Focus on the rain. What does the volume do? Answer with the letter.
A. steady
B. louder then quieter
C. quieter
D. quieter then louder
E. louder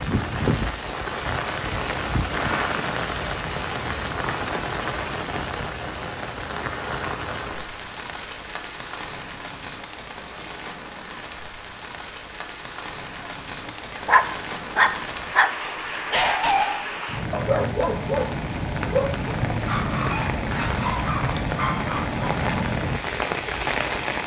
D.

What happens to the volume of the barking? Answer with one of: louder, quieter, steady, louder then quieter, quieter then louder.
quieter.